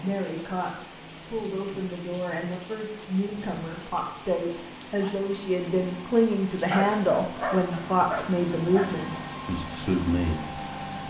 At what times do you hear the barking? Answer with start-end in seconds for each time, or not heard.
6.7-9.1.